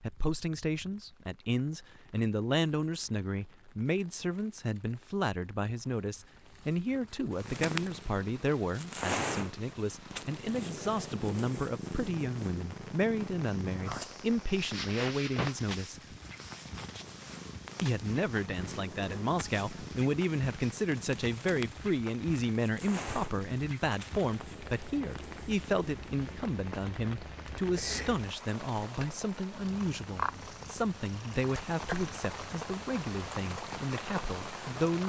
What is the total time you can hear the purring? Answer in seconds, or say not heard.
28 s.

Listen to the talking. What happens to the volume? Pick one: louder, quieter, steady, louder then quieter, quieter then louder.
steady.